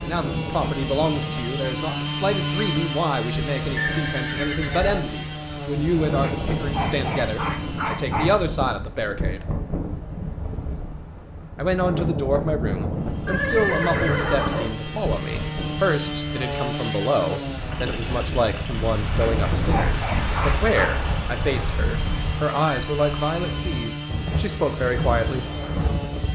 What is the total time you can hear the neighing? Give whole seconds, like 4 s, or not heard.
4 s.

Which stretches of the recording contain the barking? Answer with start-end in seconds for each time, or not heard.
6.2-8.4, 19.2-20.9.